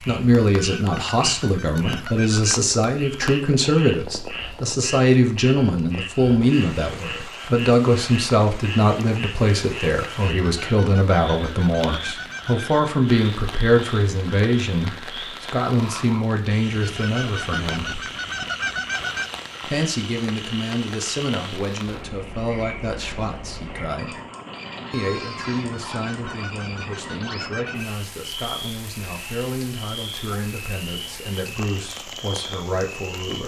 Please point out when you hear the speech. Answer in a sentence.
You can hear the speech from 0.0 to 18.1 s, from 19.6 to 24.2 s and from 24.9 to 33.4 s.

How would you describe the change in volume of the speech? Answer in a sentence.
The volume of the speech goes down.